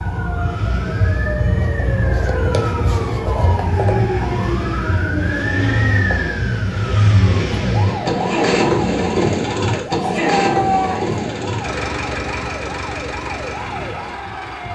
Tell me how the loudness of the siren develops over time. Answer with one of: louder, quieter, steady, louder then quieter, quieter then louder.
quieter.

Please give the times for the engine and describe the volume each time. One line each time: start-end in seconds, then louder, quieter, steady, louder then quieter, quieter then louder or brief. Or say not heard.
0.0-14.6 louder then quieter.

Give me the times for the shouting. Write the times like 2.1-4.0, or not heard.
10.1-11.2.